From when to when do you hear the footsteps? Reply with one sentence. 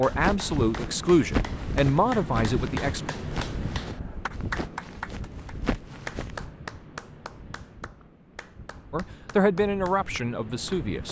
The footsteps can be heard from 0.1 to 6.5 s.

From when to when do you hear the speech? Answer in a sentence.
You can hear the speech from 0.0 to 3.0 s and from 8.9 to 11.0 s.